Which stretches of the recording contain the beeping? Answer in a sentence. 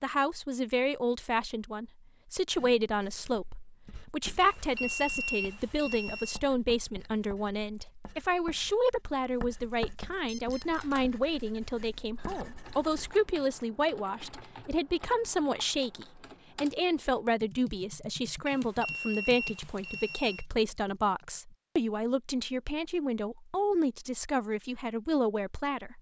You can hear the beeping from 4.4 to 6.4 s, from 10.2 to 10.8 s and from 18.4 to 20.4 s.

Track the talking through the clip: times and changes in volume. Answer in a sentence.
The talking can be heard from 0.0 to 25.9 s, at a steady volume.